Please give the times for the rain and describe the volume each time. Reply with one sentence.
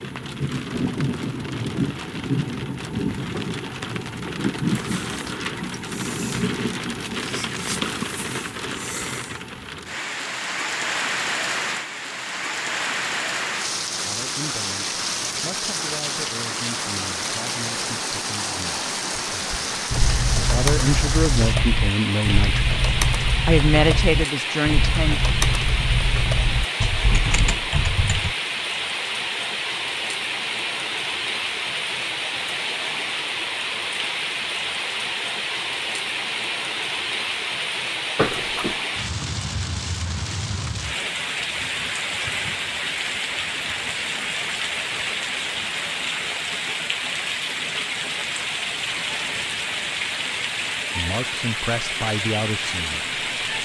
You can hear the rain from 0.0 to 53.6 s, at a steady volume.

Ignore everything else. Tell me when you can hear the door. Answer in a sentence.
You can hear the door from 38.1 to 38.8 s.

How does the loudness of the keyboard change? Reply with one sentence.
The loudness of the keyboard stays about the same.